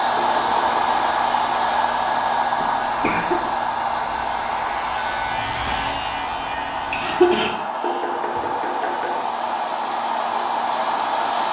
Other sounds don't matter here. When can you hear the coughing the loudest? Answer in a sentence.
The loudest moment of the coughing is at 7 seconds.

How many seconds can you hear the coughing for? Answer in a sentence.
The coughing can be heard for 3 seconds in total.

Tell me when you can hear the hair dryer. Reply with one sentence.
The hair dryer can be heard from 0.0 to 11.4 s.